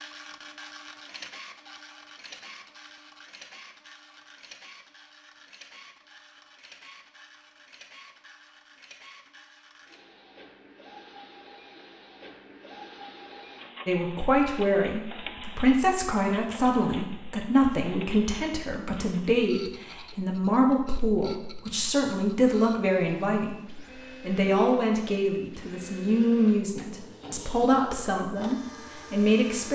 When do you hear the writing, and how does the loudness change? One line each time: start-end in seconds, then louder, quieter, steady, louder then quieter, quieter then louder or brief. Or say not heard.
not heard.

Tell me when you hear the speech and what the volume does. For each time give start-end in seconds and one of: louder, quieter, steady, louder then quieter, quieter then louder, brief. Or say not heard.
13.8-29.7 steady.